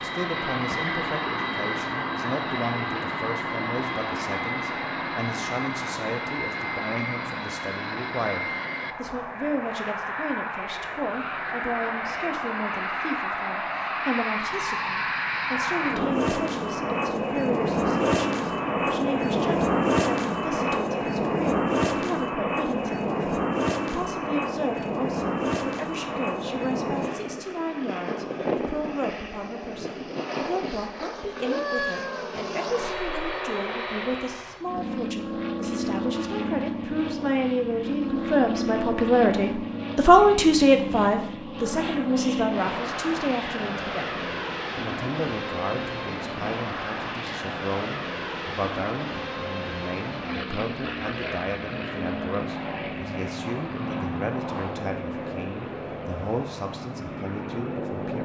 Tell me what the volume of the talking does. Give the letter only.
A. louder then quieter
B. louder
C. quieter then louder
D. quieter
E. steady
A.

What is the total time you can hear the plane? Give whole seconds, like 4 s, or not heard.
58 s.